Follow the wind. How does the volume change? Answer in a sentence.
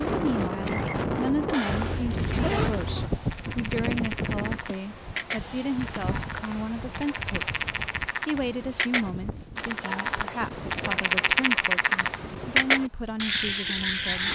The loudness of the wind goes down.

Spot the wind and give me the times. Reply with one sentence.
You can hear the wind from 0.0 to 14.3 s.